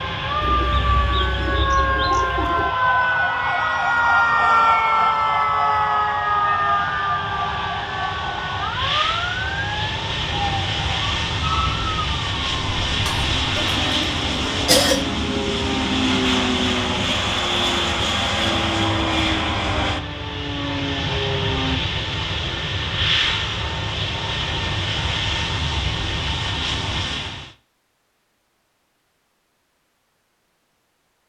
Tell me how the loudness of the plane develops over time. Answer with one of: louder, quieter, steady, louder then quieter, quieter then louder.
louder.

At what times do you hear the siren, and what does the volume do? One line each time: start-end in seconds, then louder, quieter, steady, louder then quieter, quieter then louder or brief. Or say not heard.
0.0-21.8 quieter.